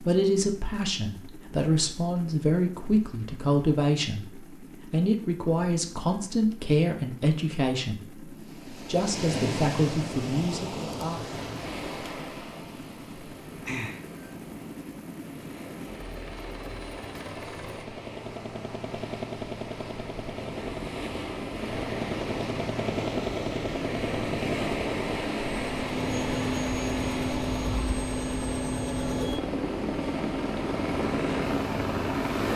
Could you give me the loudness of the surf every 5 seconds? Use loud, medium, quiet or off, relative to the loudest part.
off, loud, medium, medium, loud, loud, loud.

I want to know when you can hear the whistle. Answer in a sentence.
The whistle can't be heard in this clip.